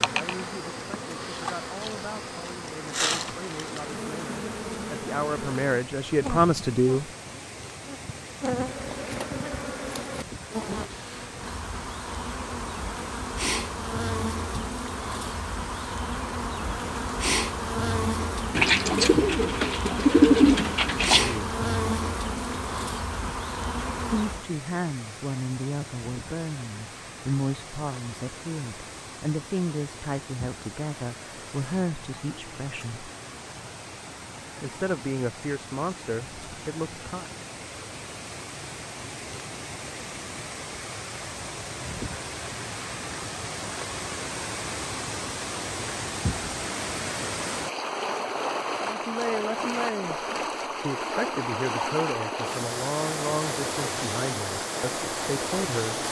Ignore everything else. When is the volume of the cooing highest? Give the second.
20 s.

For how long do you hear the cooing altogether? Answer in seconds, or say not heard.
3 s.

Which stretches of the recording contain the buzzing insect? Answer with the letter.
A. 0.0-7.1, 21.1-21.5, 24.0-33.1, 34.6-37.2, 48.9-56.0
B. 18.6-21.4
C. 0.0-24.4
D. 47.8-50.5
C.